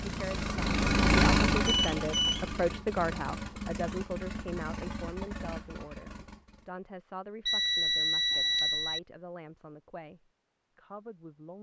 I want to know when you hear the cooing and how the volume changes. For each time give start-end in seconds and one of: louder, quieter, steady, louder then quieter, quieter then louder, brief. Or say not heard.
not heard.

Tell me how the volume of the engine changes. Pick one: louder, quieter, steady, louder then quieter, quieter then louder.
quieter.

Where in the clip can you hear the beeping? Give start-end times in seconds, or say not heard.
1.6-2.5, 7.5-9.0.